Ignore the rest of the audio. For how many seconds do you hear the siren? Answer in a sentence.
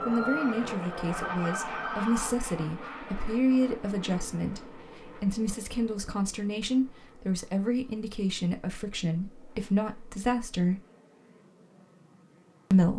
The siren can be heard for 2 seconds in total.